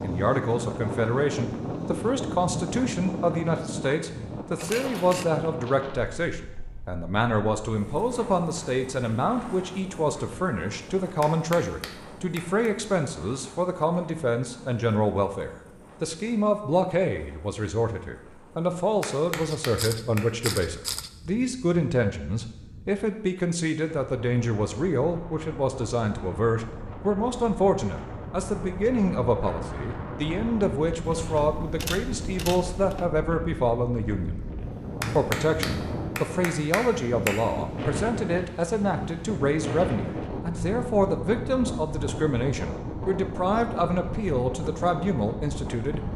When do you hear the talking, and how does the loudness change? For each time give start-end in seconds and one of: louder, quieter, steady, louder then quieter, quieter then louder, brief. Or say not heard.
0.0-34.4 steady
35.1-46.1 steady.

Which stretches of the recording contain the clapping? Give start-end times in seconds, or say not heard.
11.2-12.7, 19.0-20.6, 35.0-37.4.